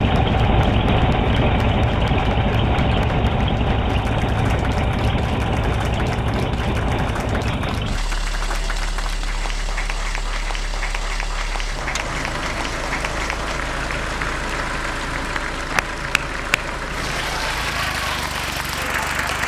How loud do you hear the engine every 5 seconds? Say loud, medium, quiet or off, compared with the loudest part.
loud, medium, medium, medium.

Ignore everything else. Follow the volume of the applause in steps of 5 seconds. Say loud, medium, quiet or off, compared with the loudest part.
medium, medium, loud, loud.